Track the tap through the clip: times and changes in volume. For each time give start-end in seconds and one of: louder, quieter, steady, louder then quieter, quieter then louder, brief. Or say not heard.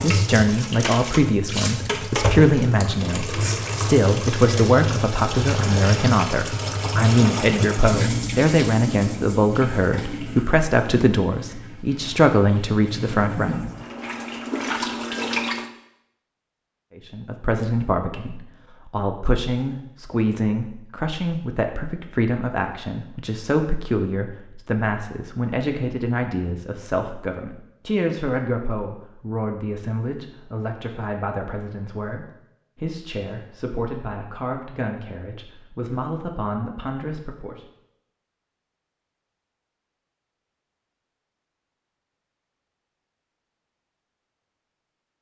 0.0-15.7 quieter then louder.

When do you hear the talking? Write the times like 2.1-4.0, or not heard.
0.0-13.6, 16.9-37.6.